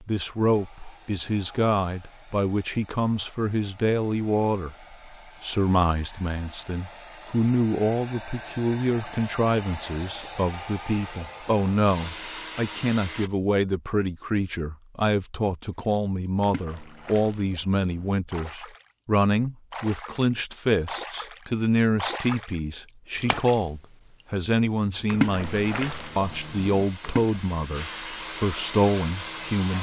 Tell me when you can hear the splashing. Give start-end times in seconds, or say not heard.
16.4-18.9, 19.7-23.9, 25.1-27.4.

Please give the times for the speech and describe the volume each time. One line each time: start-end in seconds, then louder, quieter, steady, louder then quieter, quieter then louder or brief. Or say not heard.
0.0-29.7 steady.